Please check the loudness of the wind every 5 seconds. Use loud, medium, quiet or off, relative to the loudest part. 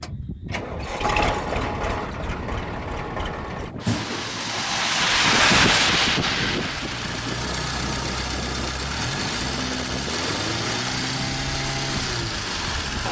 medium, loud, quiet.